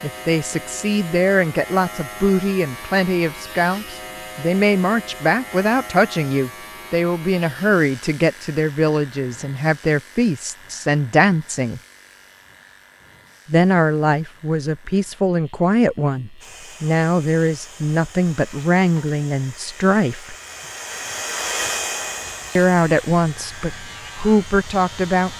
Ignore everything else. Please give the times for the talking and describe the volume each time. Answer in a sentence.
You can hear the talking from 0.0 to 11.8 s, at a steady volume; from 13.4 to 20.4 s, at a steady volume; and briefly from 22.6 to 25.3 s.